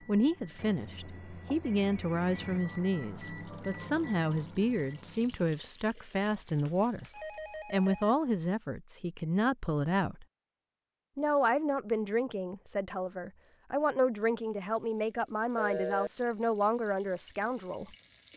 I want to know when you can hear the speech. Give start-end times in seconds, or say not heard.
0.1-7.0, 7.7-10.2, 11.2-17.9.